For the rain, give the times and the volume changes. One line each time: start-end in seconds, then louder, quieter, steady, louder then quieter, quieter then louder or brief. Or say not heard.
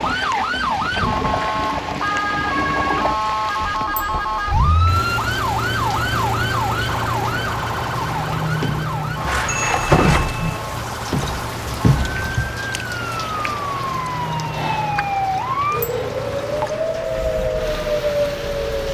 0.0-18.8 louder then quieter.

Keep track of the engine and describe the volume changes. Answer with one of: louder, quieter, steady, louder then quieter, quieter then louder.
quieter.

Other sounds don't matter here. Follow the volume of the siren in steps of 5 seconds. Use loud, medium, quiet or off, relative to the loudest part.
loud, loud, medium, loud.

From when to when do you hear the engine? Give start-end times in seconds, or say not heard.
0.0-18.8.